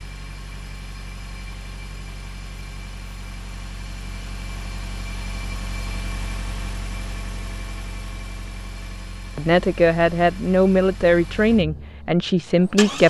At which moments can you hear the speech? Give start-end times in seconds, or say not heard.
9.3-13.0.